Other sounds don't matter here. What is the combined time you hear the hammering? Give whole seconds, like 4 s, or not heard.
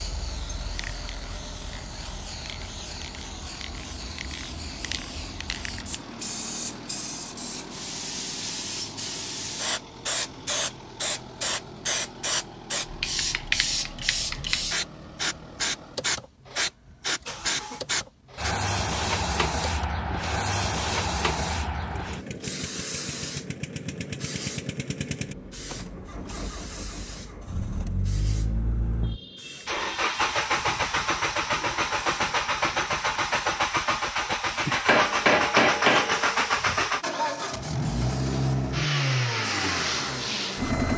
2 s.